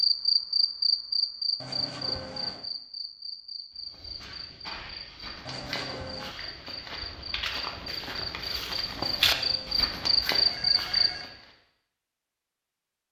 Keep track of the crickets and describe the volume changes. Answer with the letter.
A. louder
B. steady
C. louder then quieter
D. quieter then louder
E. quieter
D.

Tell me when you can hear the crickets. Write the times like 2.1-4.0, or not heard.
0.0-11.1.